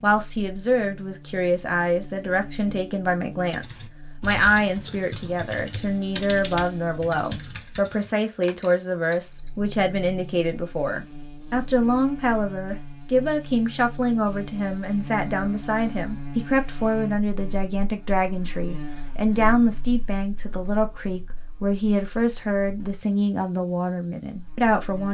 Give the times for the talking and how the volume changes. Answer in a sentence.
The talking can be heard from 0.0 to 25.0 s, at a steady volume.